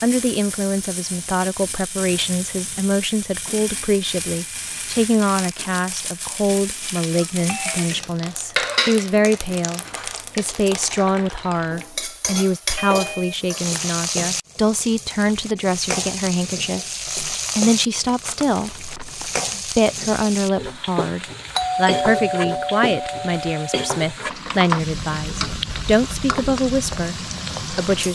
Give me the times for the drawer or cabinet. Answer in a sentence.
You can't hear the drawer or cabinet here.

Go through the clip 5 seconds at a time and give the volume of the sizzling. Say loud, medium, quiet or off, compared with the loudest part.
medium, loud, loud, loud, loud, loud.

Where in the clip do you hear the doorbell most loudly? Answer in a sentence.
The volume of the doorbell peaks at 22 seconds.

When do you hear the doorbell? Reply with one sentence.
You can hear the doorbell from 7.1 to 7.8 s, from 12.8 to 13.9 s and from 21.6 to 23.9 s.